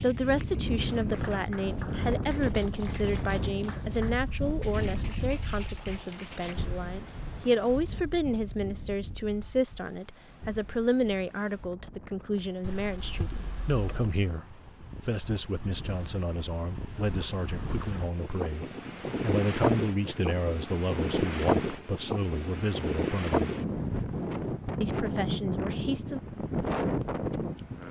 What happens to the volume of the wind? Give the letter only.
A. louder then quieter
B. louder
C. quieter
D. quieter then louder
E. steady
D.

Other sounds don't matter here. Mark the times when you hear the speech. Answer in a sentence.
The speech can be heard from 0.0 to 23.4 s and from 24.8 to 26.2 s.